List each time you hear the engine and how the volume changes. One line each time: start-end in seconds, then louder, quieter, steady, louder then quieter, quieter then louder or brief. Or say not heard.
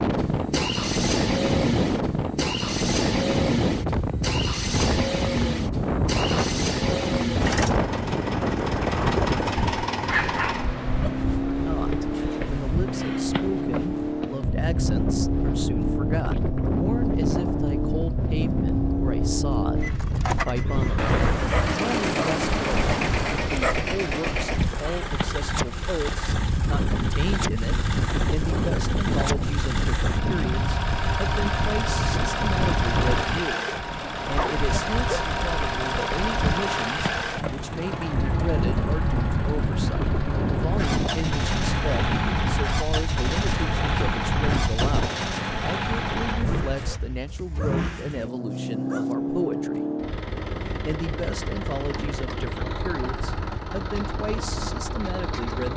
0.0-55.7 steady.